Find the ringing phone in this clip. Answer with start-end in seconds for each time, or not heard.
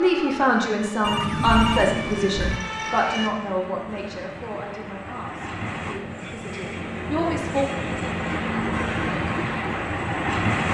1.0-2.6.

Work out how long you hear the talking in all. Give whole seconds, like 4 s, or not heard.
8 s.